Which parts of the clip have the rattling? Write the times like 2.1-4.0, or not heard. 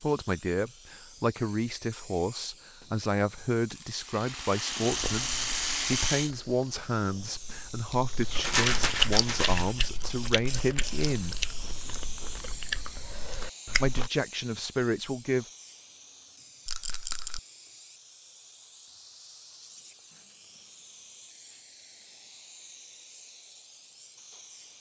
3.7-6.3, 8.4-9.8, 16.6-17.4.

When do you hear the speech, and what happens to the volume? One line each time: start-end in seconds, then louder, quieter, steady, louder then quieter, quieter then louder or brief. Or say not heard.
0.0-11.4 steady
13.8-15.4 brief.